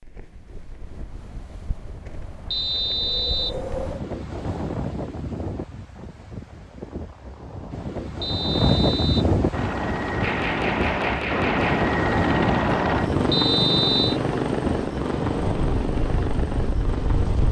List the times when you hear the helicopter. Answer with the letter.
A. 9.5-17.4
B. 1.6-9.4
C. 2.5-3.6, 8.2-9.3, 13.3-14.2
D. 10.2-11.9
A.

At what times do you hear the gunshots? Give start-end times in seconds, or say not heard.
10.2-11.9.